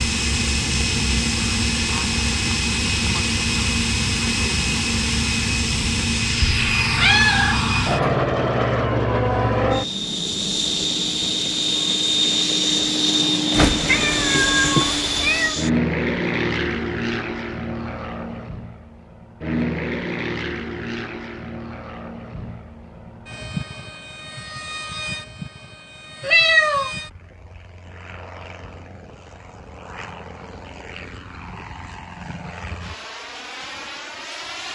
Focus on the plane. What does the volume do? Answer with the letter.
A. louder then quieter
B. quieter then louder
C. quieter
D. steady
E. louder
C.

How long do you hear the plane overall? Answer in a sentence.
The plane can be heard for 35 seconds in total.